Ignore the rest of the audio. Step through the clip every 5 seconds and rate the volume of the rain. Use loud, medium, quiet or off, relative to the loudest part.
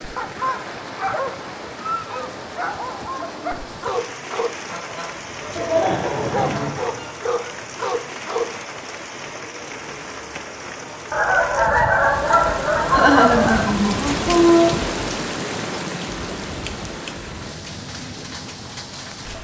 medium, medium, loud, loud.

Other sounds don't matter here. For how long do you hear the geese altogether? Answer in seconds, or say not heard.
5 s.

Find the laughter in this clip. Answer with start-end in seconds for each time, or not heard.
5.5-7.0, 12.9-14.8.